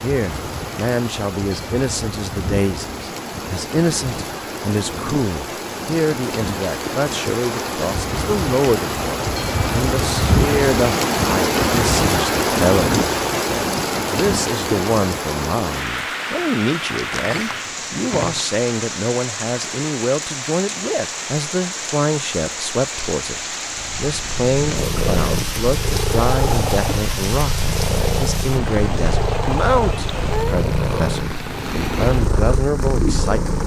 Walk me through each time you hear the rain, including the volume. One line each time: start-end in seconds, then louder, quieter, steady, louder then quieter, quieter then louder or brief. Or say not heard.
0.0-33.6 louder then quieter.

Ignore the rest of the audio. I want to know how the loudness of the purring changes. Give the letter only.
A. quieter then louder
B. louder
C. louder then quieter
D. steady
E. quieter
D.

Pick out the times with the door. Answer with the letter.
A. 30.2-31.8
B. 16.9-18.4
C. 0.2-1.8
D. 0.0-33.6
B.